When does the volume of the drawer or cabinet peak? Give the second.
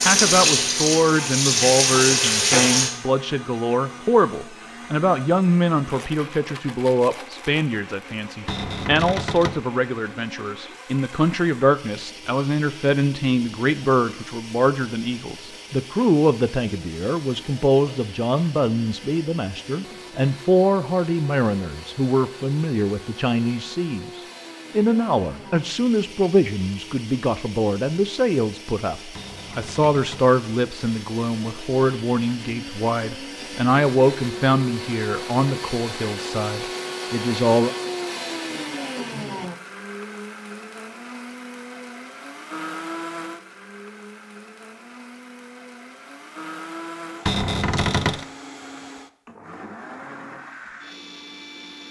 48 s.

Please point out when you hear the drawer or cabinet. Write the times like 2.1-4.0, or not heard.
8.4-9.7, 29.1-30.3, 47.2-48.2.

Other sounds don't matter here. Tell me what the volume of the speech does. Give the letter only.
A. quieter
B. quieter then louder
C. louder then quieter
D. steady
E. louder
D.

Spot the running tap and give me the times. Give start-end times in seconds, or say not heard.
0.0-2.9.